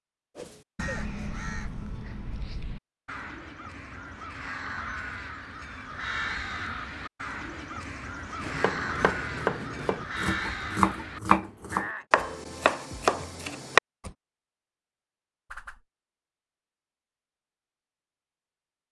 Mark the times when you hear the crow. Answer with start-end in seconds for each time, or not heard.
0.8-12.1.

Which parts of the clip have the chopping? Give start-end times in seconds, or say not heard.
8.4-14.1.